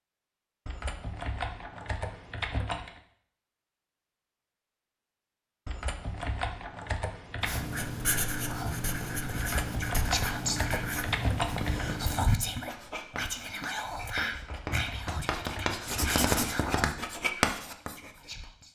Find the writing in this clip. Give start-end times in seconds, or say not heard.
7.4-18.1.